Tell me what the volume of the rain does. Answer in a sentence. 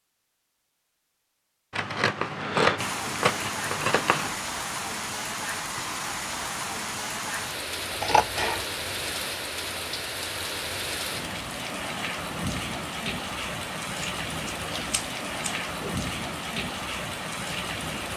The loudness of the rain stays about the same.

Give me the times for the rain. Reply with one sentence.
You can hear the rain from 2.8 to 18.1 s.